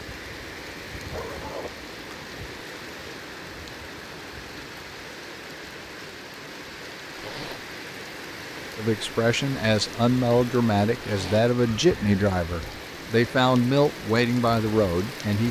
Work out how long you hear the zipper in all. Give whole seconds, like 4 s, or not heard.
2 s.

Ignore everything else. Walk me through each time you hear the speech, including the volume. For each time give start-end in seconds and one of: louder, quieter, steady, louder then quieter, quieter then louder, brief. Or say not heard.
8.8-15.4 steady.